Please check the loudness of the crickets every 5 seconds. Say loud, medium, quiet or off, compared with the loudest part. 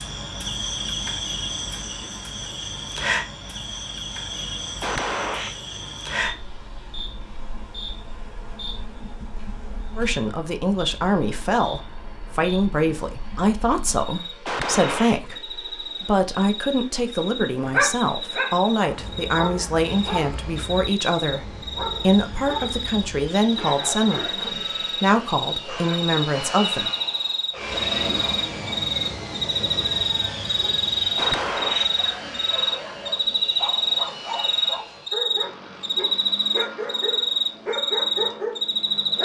medium, quiet, quiet, medium, medium, loud, loud, loud.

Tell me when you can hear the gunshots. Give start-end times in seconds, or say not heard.
4.8-5.5, 14.4-15.2, 31.1-31.9.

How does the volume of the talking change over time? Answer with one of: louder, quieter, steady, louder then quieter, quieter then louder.
steady.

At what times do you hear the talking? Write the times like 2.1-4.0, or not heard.
9.9-26.9.